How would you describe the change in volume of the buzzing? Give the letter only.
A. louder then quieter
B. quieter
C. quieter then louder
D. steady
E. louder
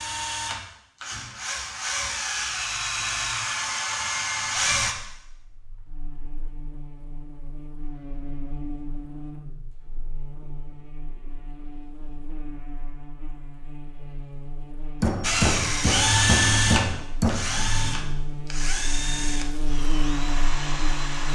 E.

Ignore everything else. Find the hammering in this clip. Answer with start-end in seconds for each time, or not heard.
15.0-17.4.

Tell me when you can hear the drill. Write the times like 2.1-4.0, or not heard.
0.0-5.0, 15.2-21.2.